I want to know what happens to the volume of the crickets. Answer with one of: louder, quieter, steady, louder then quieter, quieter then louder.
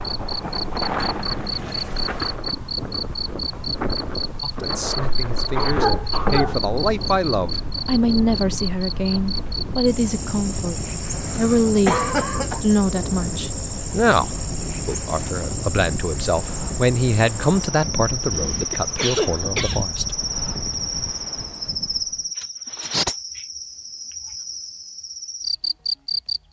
steady.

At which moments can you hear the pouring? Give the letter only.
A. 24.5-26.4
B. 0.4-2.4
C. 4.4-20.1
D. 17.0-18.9
B.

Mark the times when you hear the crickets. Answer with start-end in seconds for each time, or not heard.
0.0-26.4.